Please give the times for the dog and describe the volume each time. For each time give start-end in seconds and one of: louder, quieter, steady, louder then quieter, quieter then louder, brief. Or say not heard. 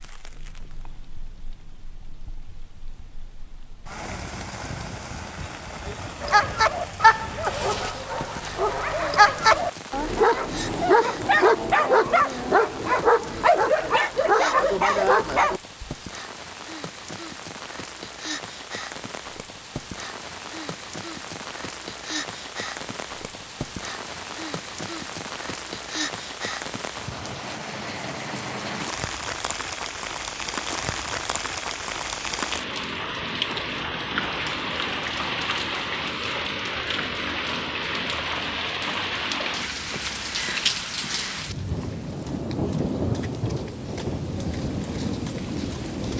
6.2-15.9 steady.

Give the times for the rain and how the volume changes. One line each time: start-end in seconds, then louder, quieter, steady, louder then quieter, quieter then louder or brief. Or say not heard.
0.0-46.1 louder.